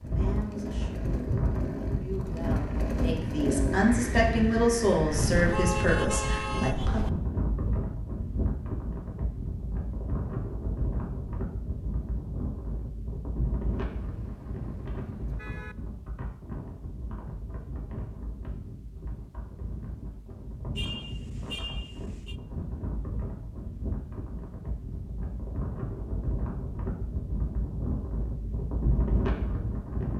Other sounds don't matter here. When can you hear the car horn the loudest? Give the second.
6 s.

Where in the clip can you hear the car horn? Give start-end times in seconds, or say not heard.
5.1-7.1, 13.9-15.8, 20.8-22.4.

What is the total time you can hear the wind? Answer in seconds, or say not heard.
30 s.